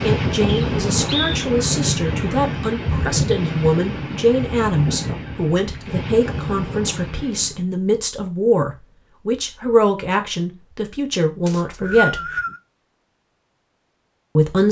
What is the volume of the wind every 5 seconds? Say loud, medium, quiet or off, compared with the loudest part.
loud, medium, off.